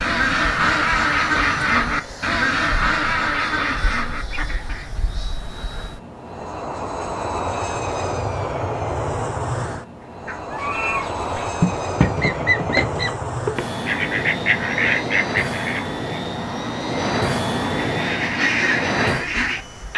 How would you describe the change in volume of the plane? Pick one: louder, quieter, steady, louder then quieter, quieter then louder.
louder.